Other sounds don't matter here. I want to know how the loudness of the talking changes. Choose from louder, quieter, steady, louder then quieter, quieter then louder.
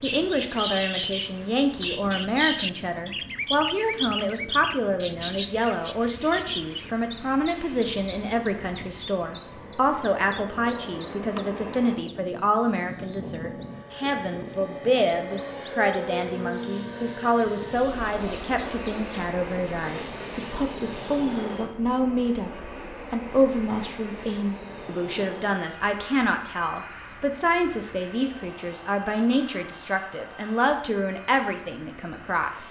steady.